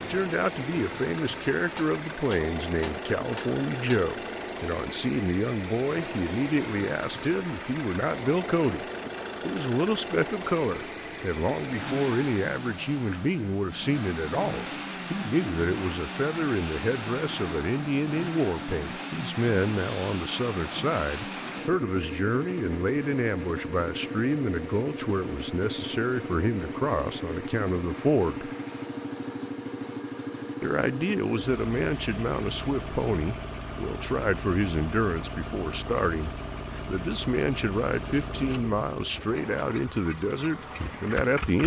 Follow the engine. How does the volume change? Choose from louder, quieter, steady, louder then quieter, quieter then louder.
steady.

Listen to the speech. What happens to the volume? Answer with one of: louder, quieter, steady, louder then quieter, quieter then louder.
steady.